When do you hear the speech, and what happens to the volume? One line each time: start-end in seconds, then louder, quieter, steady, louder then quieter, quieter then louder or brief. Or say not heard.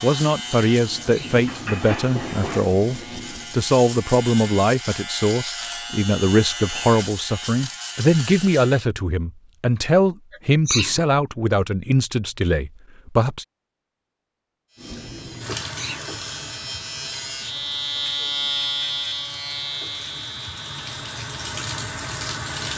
0.0-13.4 steady.